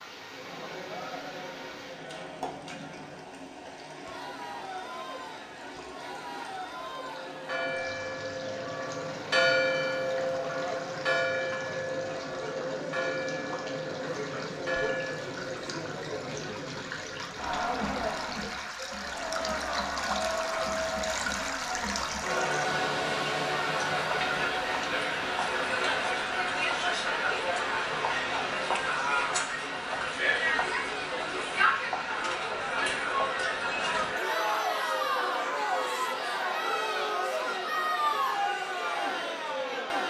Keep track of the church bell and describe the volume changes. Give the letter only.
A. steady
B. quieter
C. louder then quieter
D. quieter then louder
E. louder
C.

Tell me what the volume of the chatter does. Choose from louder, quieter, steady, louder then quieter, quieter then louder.
louder.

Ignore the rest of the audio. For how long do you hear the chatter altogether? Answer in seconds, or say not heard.
40 s.